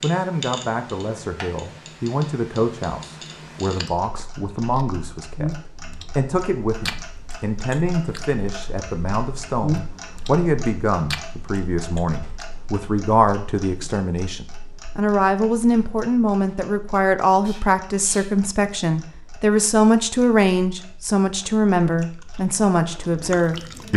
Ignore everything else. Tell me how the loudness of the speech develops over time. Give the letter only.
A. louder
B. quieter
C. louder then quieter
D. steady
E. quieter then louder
A.